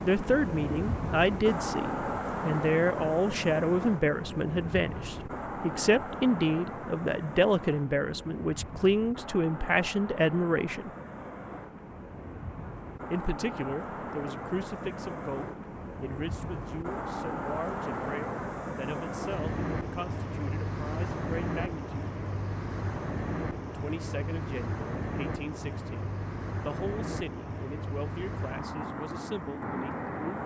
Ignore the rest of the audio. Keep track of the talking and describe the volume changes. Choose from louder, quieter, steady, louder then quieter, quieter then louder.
quieter.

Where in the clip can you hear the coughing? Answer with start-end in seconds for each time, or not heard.
not heard.